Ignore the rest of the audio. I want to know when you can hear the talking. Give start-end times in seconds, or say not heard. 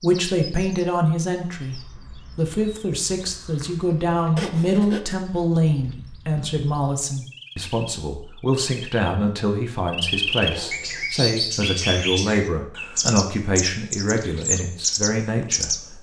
0.0-15.9.